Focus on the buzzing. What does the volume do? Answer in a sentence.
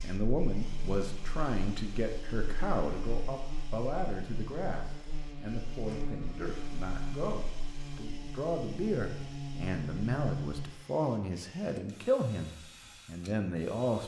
The loudness of the buzzing goes up.